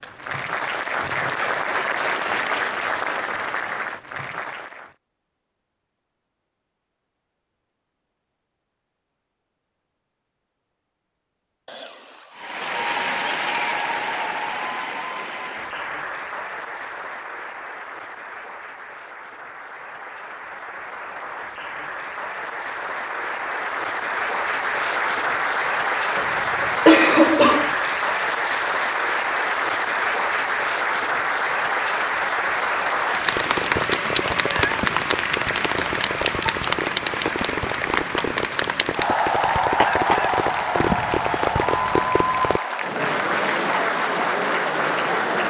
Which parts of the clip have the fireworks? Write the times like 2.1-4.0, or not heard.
33.2-42.6.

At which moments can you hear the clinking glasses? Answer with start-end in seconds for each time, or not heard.
not heard.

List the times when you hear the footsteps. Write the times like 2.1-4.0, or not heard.
not heard.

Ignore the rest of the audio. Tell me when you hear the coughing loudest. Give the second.
27 s.